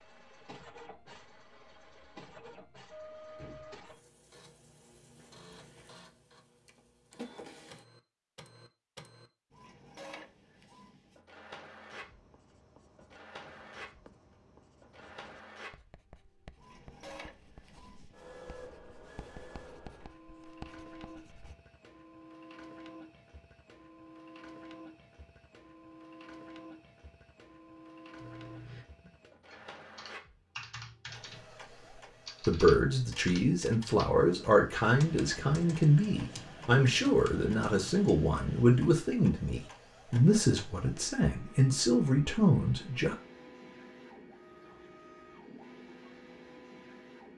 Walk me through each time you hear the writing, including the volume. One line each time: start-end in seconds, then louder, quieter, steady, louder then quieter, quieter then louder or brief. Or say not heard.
11.9-21.6 louder.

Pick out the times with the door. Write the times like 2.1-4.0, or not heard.
3.4-3.8.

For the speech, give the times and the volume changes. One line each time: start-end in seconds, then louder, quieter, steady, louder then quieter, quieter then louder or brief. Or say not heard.
32.5-43.1 steady.